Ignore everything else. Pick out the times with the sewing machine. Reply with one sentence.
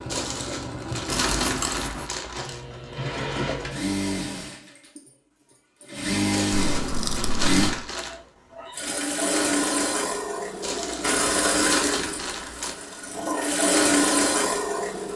The sewing machine can be heard from 0.0 to 15.1 s.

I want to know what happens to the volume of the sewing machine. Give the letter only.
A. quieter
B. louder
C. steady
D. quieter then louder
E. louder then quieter
B.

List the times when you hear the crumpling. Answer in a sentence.
The crumpling can be heard from 0.1 to 2.6 s, from 6.3 to 8.2 s and from 10.6 to 12.8 s.